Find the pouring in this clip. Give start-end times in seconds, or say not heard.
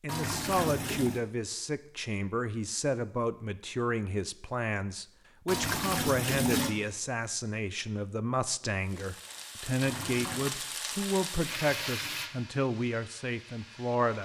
0.1-1.2, 5.5-6.8, 9.8-10.4.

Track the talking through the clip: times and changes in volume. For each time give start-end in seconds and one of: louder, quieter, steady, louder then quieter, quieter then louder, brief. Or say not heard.
0.0-14.2 steady.